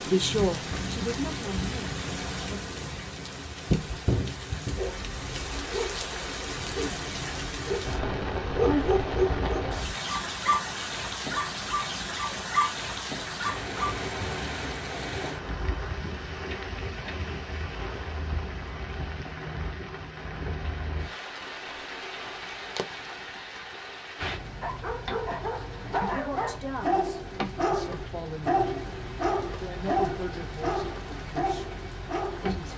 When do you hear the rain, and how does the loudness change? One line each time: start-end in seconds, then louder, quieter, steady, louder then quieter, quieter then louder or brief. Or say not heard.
0.0-32.7 quieter.